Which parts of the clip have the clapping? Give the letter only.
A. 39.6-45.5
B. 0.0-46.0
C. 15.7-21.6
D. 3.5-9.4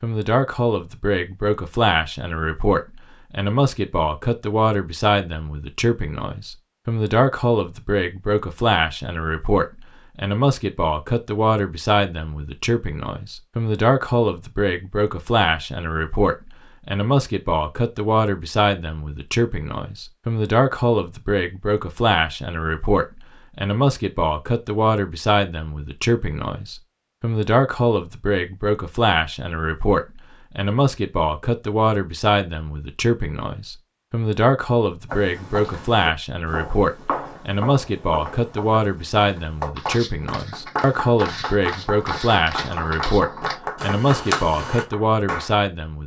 A.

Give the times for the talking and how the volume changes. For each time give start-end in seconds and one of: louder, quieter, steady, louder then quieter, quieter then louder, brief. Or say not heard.
0.0-46.0 steady.